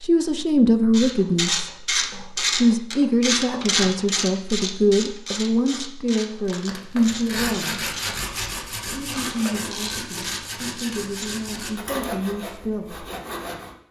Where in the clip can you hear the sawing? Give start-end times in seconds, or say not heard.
6.5-13.8.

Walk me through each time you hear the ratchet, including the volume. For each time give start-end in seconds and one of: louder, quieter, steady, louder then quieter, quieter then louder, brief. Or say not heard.
0.9-11.4 quieter.